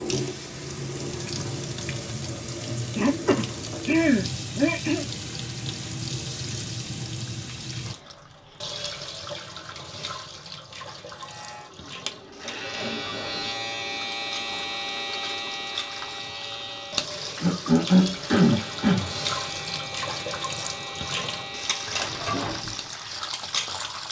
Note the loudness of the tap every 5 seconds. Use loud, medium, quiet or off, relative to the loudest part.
loud, loud, medium, loud, loud.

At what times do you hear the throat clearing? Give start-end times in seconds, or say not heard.
3.0-5.0, 12.4-13.5, 17.4-19.1.